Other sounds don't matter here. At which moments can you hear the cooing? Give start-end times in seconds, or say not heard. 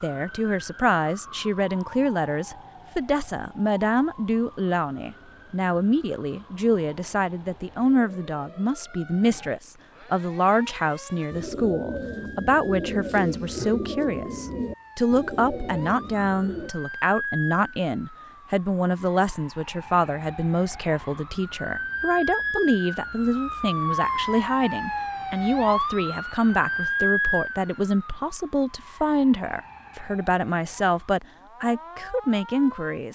11.2-16.7.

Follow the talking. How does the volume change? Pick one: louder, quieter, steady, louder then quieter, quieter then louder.
steady.